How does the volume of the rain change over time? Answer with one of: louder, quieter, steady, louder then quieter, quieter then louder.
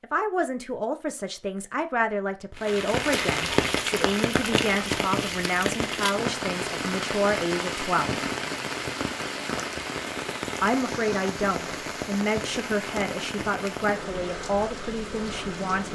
quieter.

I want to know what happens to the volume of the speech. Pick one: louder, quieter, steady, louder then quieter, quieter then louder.
steady.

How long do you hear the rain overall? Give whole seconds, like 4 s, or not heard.
13 s.